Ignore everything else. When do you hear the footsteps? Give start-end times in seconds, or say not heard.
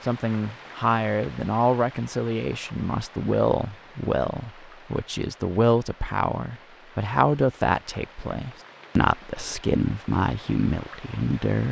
not heard.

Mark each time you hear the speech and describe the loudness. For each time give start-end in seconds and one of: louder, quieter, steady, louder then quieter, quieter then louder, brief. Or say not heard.
0.0-11.6 steady.